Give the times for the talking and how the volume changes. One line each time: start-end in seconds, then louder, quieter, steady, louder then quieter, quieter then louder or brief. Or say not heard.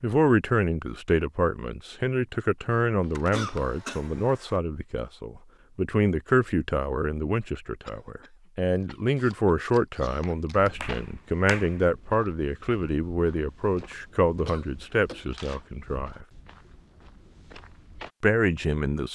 0.0-16.2 steady
18.2-19.0 brief.